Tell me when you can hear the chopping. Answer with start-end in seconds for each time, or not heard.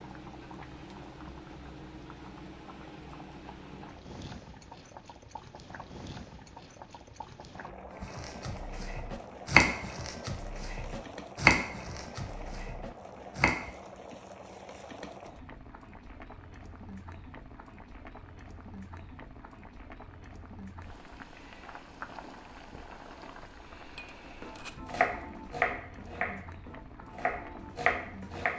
8.0-13.6, 24.4-28.5.